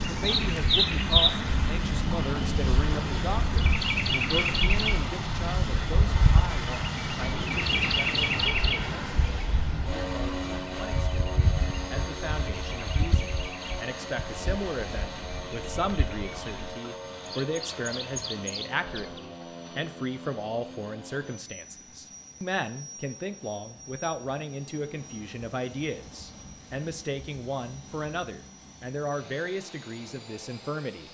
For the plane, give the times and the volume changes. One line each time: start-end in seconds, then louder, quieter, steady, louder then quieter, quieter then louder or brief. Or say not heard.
0.0-31.0 quieter.